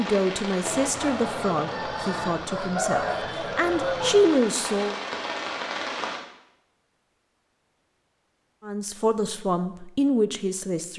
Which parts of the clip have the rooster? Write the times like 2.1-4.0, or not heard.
0.6-4.4.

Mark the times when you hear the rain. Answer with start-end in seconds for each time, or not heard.
0.0-6.2.